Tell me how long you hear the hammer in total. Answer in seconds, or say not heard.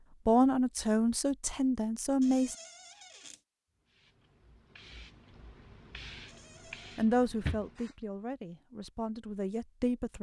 not heard.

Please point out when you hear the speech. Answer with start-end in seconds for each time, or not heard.
0.2-2.5, 7.0-10.1.